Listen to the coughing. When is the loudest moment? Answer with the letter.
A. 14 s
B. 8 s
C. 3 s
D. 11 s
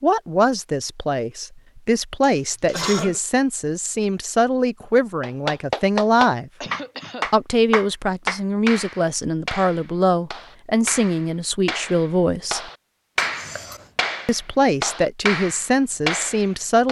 C.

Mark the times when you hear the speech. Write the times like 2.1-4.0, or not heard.
0.0-6.5, 7.3-12.6, 14.2-16.8.